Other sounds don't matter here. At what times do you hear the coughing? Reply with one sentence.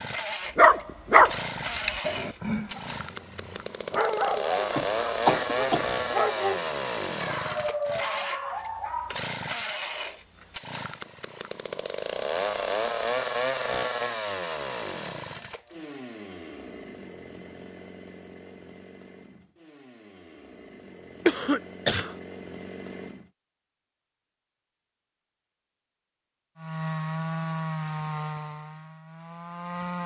The coughing can be heard from 4.8 to 6.0 s and from 21.2 to 22.1 s.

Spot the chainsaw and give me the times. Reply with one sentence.
The chainsaw can be heard from 0.0 to 23.3 s and from 26.6 to 30.0 s.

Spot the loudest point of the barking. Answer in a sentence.
The volume of the barking peaks at 1 second.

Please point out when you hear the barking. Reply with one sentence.
You can hear the barking from 0.6 to 9.2 s.